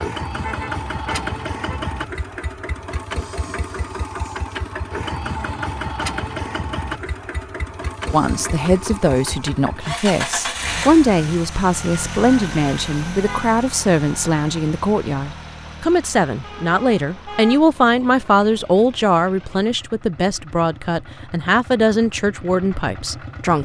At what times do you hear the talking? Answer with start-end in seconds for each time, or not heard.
8.1-23.6.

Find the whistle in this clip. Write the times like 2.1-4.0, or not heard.
not heard.